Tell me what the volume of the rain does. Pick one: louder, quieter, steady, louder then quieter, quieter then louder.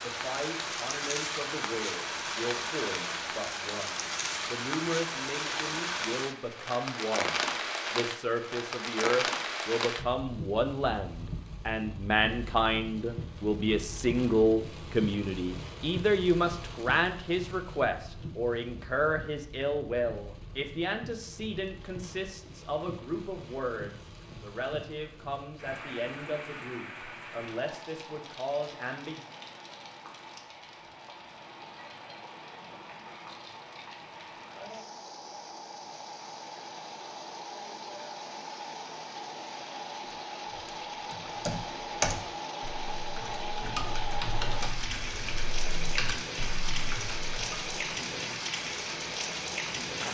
quieter then louder.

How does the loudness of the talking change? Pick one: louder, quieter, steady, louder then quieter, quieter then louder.
louder then quieter.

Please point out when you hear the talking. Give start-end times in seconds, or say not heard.
0.0-29.2.